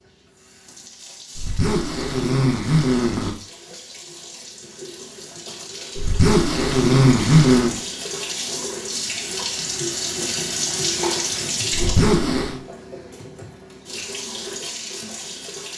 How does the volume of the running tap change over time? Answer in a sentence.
The loudness of the running tap goes up, then down.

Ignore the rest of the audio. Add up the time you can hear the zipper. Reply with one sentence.
The zipper can be heard for 5 seconds in total.